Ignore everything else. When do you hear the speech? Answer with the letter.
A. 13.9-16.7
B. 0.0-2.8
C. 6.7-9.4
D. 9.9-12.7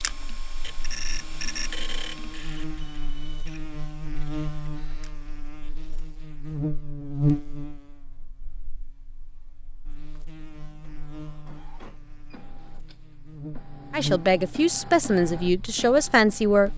A.